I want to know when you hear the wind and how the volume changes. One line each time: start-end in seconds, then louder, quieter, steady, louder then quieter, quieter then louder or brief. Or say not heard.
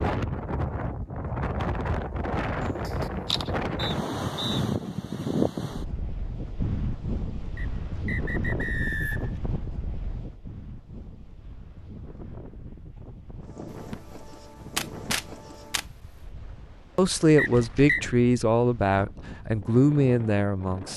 0.0-20.9 quieter.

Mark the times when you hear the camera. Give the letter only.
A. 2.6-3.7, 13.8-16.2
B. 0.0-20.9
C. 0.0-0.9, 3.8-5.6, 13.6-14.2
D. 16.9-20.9
A.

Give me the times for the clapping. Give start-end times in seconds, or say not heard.
not heard.